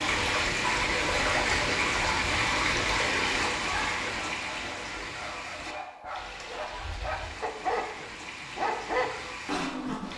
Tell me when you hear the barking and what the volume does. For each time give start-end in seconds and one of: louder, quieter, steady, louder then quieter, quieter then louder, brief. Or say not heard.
3.6-10.1 louder.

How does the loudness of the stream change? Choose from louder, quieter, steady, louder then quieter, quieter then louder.
quieter.